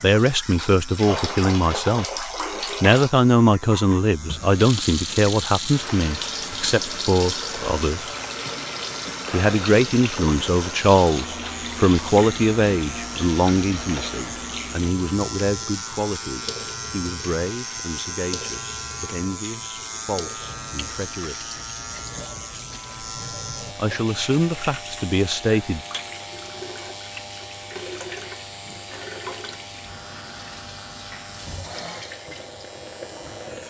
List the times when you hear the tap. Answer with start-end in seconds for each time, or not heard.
0.0-33.6.